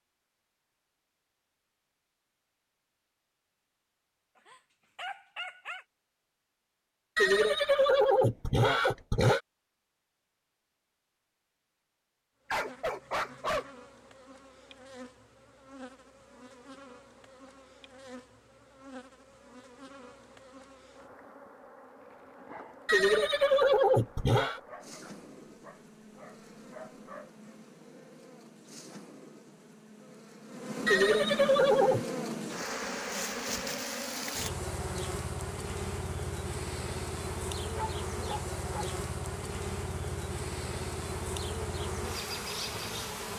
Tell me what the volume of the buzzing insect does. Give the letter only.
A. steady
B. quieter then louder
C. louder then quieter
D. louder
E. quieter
D.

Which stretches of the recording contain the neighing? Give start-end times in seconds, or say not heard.
7.2-9.4, 22.9-24.6, 30.9-32.0.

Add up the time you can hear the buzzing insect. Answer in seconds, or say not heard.
31 s.